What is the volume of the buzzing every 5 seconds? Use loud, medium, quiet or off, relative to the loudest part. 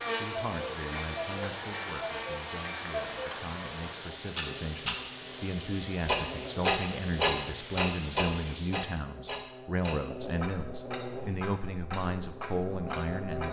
loud, medium, loud.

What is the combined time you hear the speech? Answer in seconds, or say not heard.
13 s.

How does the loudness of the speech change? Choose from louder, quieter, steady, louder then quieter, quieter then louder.
louder.